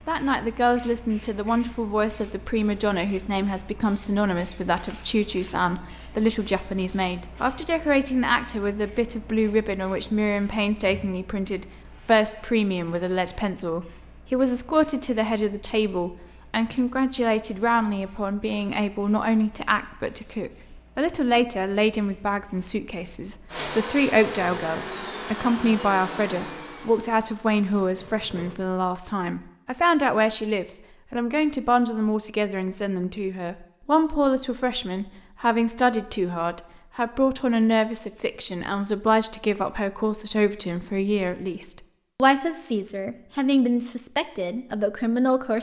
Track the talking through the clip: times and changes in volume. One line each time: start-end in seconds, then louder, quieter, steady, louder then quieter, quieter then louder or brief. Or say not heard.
0.1-45.5 steady.